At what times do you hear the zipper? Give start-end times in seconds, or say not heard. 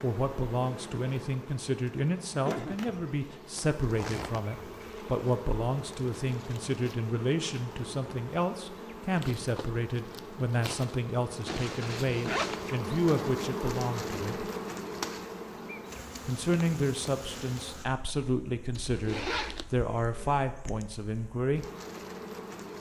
3.5-4.4, 11.4-12.8, 18.7-19.6.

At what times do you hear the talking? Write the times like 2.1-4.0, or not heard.
0.0-14.5, 16.2-21.6.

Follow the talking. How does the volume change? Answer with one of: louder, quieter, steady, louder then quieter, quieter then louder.
steady.